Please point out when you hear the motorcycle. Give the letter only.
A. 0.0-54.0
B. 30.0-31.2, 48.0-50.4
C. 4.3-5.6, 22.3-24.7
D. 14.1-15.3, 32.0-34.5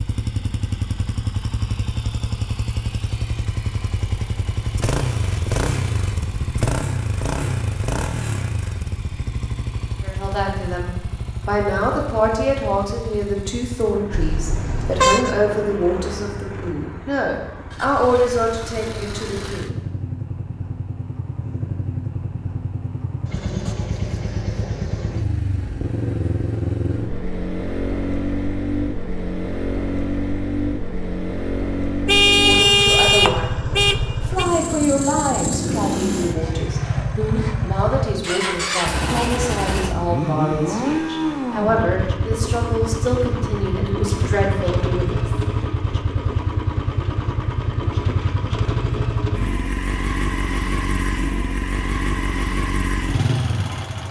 A.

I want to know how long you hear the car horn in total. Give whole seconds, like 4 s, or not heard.
4 s.